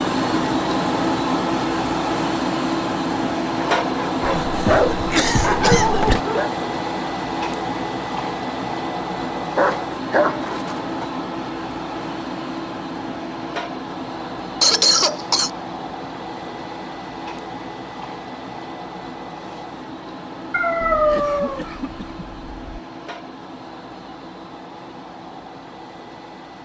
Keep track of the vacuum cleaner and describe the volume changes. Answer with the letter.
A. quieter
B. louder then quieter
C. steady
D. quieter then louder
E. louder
A.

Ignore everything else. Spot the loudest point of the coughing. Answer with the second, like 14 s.
15 s.